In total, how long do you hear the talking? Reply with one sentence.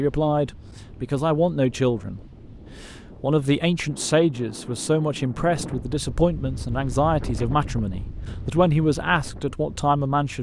You can hear the talking for 10 seconds altogether.